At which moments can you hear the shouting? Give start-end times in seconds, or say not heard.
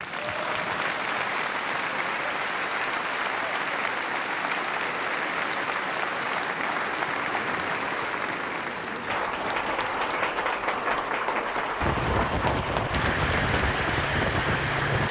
not heard.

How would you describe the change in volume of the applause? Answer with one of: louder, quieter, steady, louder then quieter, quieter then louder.
steady.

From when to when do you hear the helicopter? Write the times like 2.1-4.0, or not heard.
11.8-15.0.